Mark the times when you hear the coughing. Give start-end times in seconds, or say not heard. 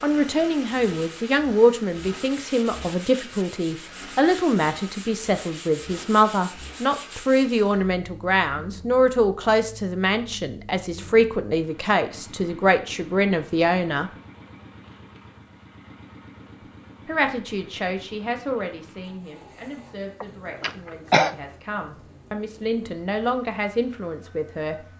20.2-21.4.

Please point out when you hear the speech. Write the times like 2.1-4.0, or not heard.
0.0-14.1, 17.1-24.9.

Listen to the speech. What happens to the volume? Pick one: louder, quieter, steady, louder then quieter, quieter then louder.
quieter.